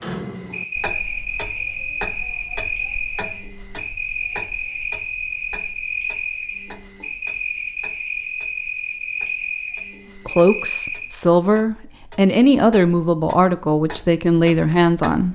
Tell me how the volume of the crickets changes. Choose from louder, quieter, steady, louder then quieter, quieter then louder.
steady.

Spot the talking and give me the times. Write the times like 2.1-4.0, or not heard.
10.2-15.3.